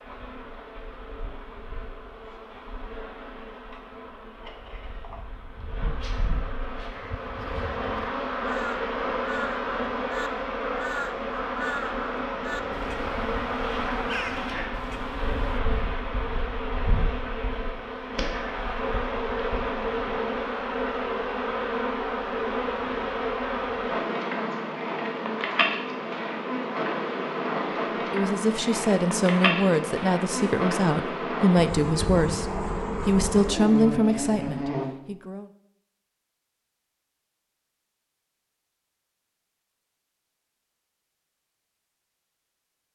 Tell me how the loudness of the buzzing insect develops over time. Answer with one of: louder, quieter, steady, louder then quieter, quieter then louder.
louder.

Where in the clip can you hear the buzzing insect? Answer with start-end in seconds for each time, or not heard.
0.0-34.9.